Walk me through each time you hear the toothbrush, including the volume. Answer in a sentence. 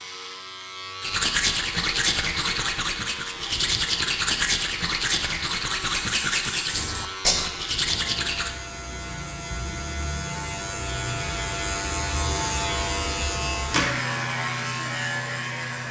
You can hear the toothbrush from 1.0 to 8.6 s, at a steady volume.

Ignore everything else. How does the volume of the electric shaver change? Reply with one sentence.
The loudness of the electric shaver goes up.